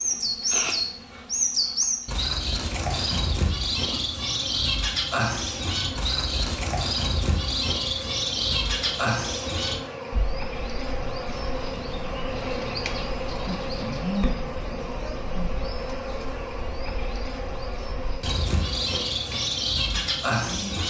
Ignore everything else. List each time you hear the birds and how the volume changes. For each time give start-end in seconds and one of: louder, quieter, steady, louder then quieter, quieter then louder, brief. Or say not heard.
0.0-20.8 quieter then louder.